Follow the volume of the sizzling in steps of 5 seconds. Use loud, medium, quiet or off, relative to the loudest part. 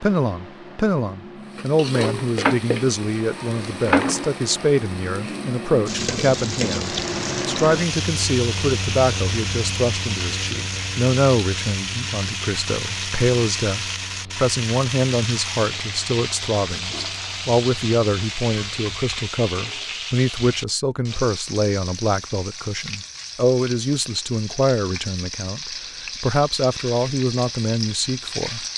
loud, loud, loud, loud, medium, medium.